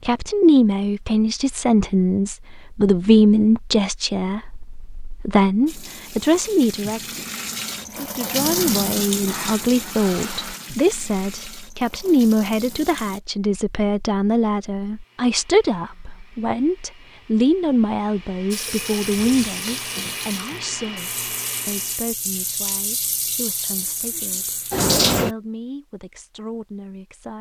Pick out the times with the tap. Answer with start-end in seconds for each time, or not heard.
5.7-13.2, 18.5-25.4.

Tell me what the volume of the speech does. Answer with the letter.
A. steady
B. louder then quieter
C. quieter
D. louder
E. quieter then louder
C.